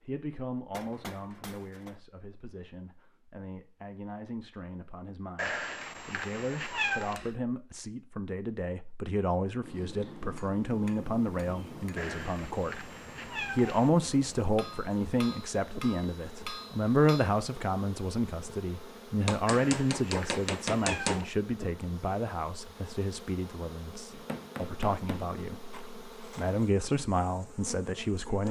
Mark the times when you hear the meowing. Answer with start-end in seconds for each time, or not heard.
5.3-7.2, 11.9-13.9, 19.4-21.2.